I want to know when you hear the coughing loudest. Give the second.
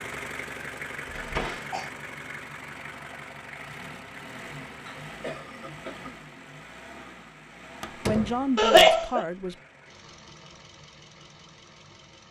9 s.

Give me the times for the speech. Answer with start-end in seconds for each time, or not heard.
8.0-9.6.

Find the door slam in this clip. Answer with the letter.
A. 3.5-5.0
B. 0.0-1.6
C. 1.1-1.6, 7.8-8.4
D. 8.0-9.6
C.